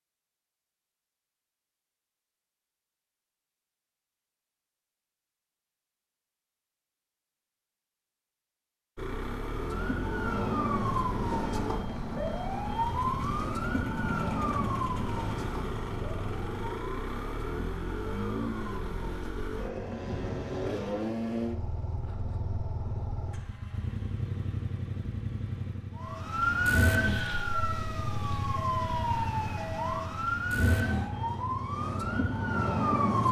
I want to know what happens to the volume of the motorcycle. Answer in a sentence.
The volume of the motorcycle stays about the same.